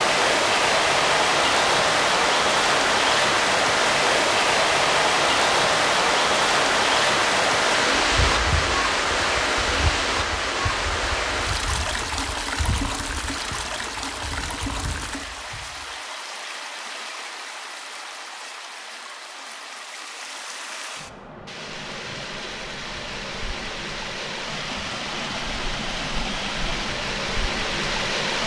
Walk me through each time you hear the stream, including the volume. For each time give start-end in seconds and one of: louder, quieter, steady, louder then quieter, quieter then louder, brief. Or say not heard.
0.0-28.4 quieter then louder.